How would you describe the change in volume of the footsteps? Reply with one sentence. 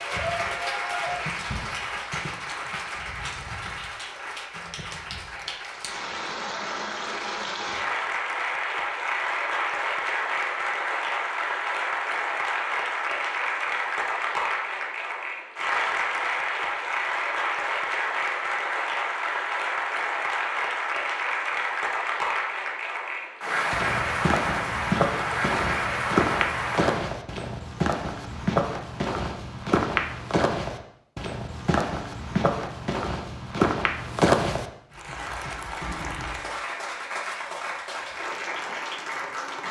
The volume of the footsteps stays about the same.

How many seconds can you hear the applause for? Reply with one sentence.
You can hear the applause for 32 seconds altogether.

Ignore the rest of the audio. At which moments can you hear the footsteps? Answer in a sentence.
You can hear the footsteps from 23.7 to 34.6 s.